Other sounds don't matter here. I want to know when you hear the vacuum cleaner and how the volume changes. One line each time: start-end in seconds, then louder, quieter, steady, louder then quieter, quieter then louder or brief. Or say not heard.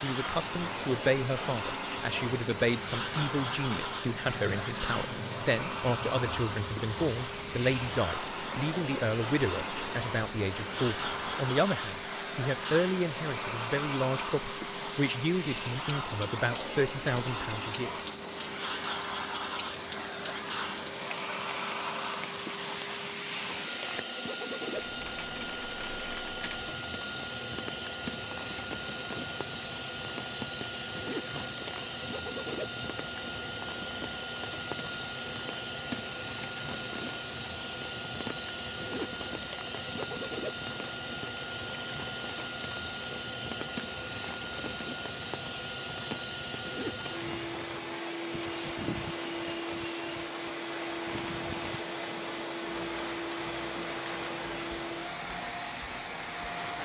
0.0-56.8 steady.